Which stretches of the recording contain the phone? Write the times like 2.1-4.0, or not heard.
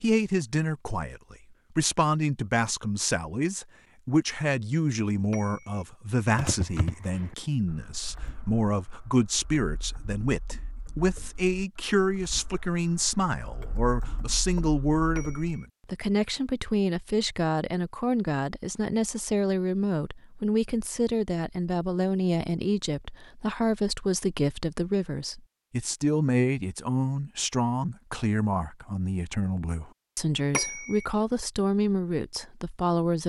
5.3-5.8, 15.2-15.7, 30.5-31.1.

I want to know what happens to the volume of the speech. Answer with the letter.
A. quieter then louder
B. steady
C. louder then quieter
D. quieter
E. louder
B.